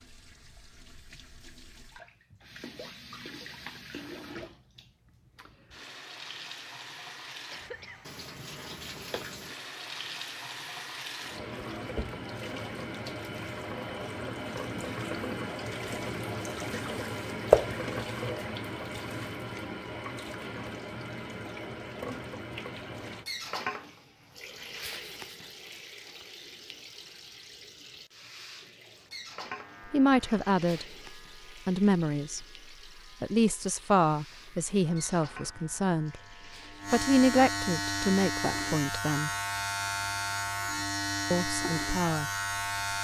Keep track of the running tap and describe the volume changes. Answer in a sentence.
The volume of the running tap goes up, then down.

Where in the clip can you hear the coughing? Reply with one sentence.
The coughing can be heard from 7.5 to 8.0 s.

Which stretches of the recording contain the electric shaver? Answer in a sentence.
The electric shaver can be heard from 29.5 to 43.0 s.